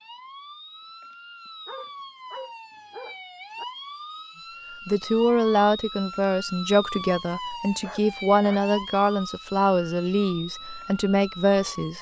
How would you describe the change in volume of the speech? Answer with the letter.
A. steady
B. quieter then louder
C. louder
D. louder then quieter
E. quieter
A.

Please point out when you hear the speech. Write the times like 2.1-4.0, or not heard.
4.8-11.9.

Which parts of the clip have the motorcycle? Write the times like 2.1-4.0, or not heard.
not heard.